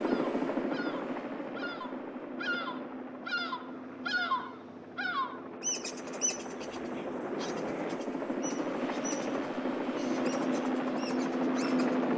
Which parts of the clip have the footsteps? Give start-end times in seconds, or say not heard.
not heard.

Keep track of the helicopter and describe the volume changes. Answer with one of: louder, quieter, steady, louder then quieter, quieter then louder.
quieter then louder.